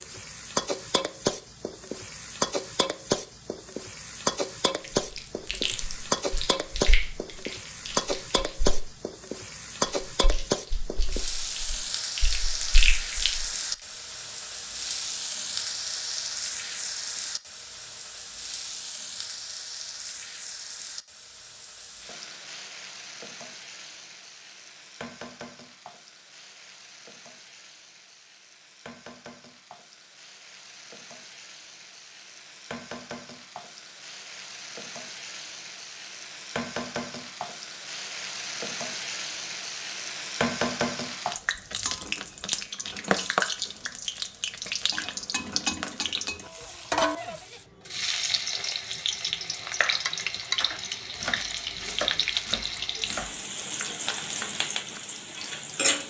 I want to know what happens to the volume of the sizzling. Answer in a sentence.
The loudness of the sizzling goes down, then up.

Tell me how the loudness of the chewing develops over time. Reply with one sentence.
The loudness of the chewing goes down, then up.